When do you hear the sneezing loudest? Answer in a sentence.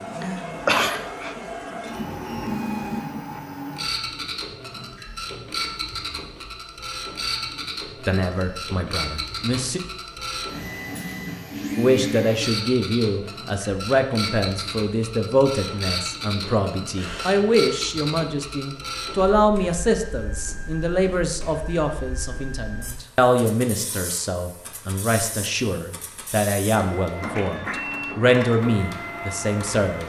The volume of the sneezing peaks at 1 second.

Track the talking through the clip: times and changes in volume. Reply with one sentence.
The talking can be heard briefly from 8.1 to 9.8 s; and from 11.8 to 30.0 s, at a steady volume.